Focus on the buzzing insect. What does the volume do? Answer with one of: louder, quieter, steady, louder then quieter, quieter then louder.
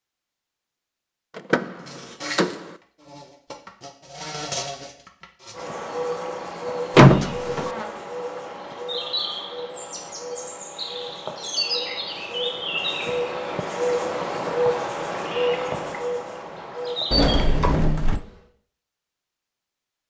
louder.